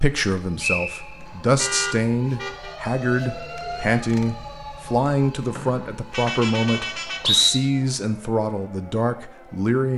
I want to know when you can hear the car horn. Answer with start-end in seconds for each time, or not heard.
1.6-2.8, 6.1-7.3.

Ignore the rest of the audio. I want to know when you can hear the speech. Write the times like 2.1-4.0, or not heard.
0.0-9.9.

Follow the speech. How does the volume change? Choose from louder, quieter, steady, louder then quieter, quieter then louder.
steady.